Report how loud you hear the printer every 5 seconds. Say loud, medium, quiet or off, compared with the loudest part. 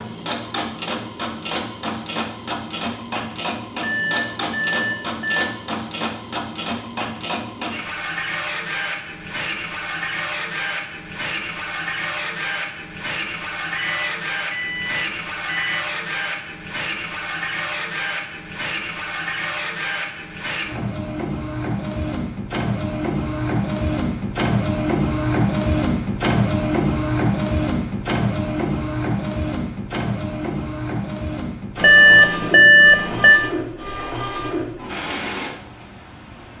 medium, medium, medium, medium, loud, loud, medium, medium.